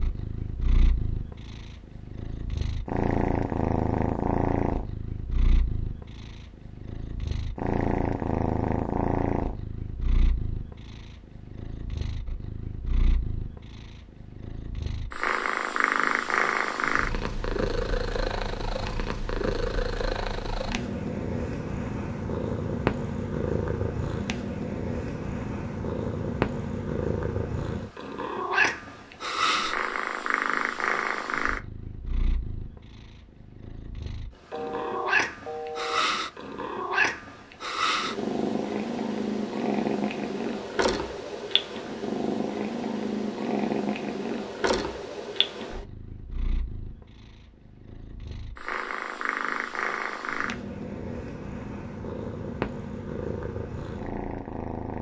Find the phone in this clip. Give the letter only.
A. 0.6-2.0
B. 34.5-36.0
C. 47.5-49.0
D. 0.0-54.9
B.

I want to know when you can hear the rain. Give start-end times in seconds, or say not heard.
not heard.